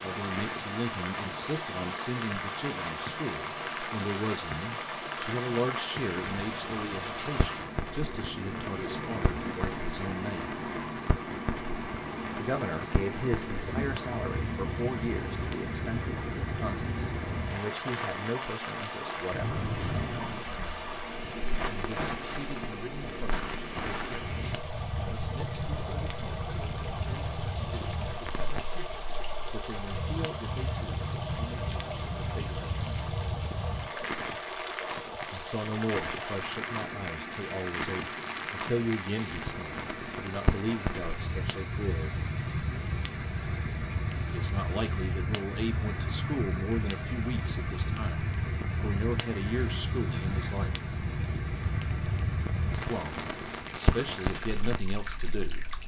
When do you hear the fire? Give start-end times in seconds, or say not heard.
0.1-55.8.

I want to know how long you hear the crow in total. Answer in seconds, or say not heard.
not heard.